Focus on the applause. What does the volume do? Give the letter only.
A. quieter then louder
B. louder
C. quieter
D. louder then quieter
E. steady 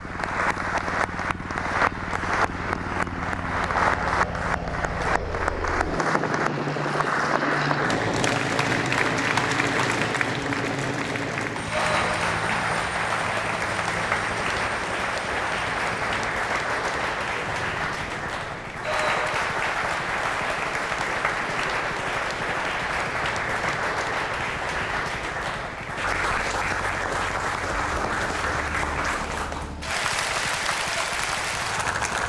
E.